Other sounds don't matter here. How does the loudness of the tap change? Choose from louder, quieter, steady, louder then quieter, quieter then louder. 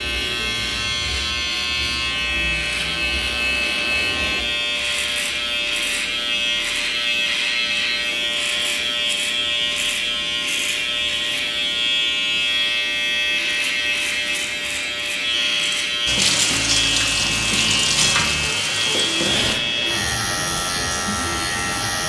quieter.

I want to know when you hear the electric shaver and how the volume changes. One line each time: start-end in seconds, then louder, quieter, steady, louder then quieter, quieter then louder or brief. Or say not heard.
0.0-22.0 steady.